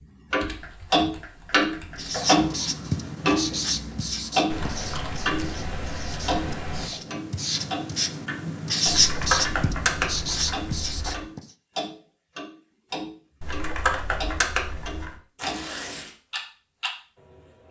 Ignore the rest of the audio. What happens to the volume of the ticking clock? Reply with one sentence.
The loudness of the ticking clock goes down.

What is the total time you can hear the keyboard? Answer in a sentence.
You can hear the keyboard for 8 seconds altogether.